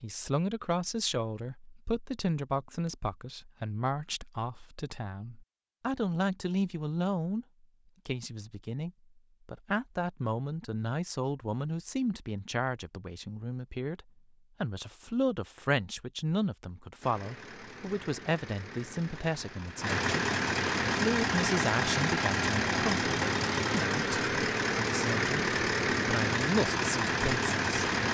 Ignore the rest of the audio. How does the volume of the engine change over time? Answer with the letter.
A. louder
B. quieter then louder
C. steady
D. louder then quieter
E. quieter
A.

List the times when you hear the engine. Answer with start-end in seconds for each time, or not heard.
17.0-28.0.